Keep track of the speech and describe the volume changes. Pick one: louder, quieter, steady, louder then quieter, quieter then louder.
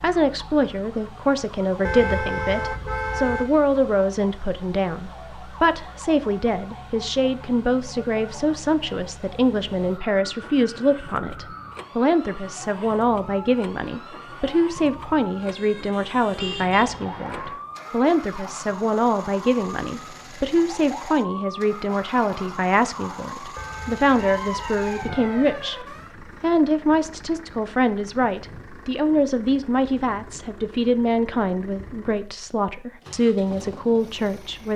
steady.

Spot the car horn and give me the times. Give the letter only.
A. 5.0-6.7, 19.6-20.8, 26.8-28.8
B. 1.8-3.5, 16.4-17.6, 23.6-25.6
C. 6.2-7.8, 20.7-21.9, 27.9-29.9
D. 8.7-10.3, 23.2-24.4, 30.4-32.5
B.